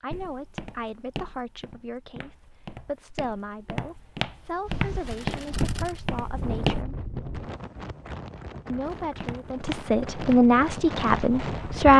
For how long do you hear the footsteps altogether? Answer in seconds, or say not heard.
8 s.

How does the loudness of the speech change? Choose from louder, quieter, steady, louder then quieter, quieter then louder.
louder.